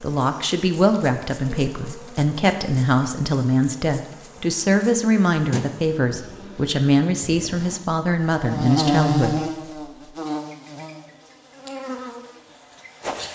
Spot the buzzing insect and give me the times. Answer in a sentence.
The buzzing insect can be heard from 0.0 to 13.3 s.